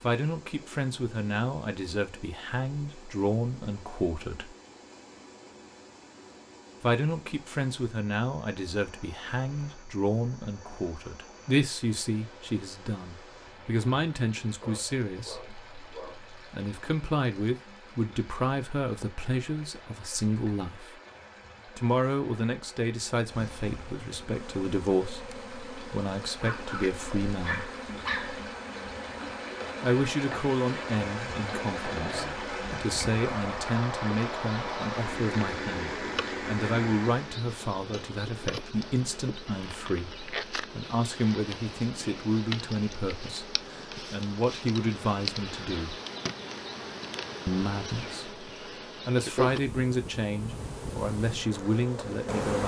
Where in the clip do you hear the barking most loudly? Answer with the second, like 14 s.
28 s.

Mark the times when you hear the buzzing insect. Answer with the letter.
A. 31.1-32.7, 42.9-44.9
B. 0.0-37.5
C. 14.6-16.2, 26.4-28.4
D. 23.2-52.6
D.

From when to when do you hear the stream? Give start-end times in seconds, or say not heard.
0.0-37.5.